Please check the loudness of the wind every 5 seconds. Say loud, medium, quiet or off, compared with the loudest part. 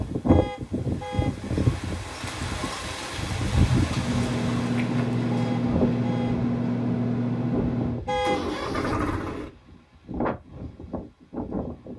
loud, medium, medium.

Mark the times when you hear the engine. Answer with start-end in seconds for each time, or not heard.
4.0-9.5.